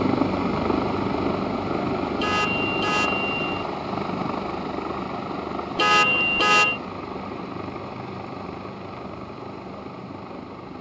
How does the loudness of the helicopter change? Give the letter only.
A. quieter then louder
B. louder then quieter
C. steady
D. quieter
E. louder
D.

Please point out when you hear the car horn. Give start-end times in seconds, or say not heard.
2.1-3.6, 5.8-6.8.